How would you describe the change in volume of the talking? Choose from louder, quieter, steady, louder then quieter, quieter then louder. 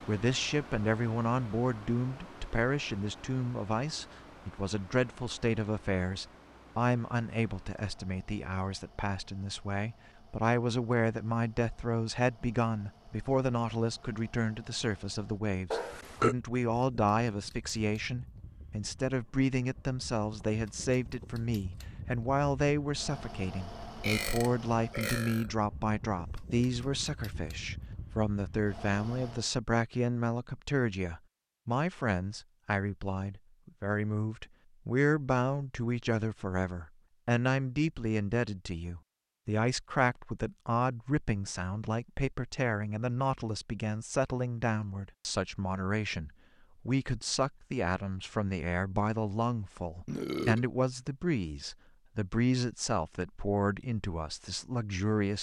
steady.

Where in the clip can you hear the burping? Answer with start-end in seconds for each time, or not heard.
15.7-16.4, 24.0-25.5, 50.0-50.6.